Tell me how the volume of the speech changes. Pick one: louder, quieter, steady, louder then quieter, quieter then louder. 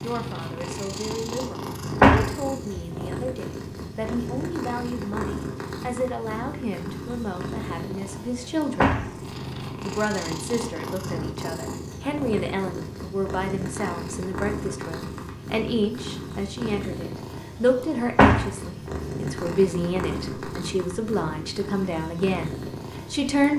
louder.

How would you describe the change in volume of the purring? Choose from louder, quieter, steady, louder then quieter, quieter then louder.
steady.